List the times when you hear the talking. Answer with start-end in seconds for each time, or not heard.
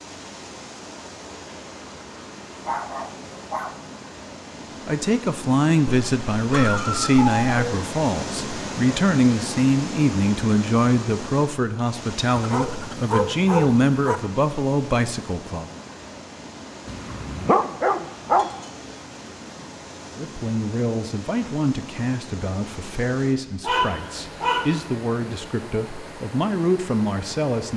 4.8-15.7, 20.1-27.7.